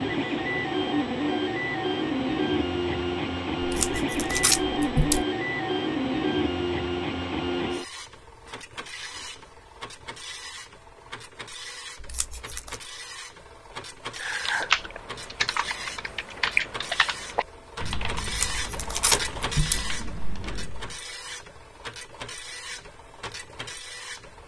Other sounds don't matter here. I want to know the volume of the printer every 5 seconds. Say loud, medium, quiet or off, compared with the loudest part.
loud, loud, quiet, medium, quiet.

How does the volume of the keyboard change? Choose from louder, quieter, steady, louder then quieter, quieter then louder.
quieter.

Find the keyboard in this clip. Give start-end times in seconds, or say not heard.
14.2-20.9.